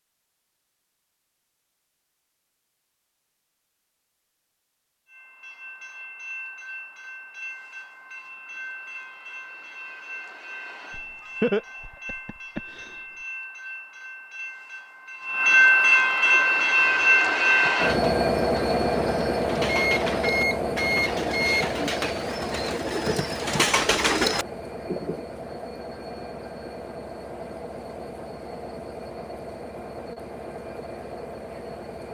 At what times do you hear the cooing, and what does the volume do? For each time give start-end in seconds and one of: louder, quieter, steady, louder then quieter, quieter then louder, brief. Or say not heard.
16.2-25.2 louder.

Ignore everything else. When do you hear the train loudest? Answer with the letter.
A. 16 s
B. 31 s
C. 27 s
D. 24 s
A.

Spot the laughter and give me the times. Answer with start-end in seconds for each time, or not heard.
10.9-12.9.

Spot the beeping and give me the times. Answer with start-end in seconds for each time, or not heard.
19.6-21.6.